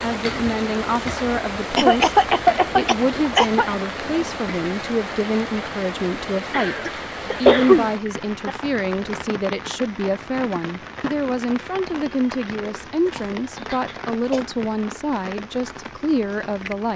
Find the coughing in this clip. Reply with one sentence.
You can hear the coughing from 1.8 to 3.8 s, from 6.5 to 8.5 s and from 13.1 to 14.4 s.